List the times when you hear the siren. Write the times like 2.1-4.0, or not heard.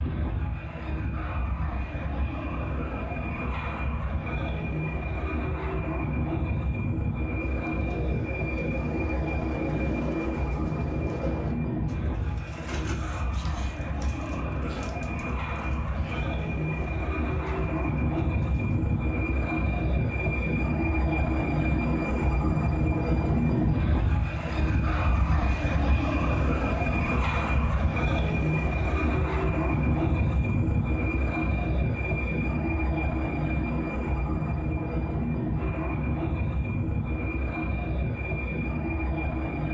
not heard.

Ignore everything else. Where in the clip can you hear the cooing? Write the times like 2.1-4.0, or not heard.
7.3-18.9.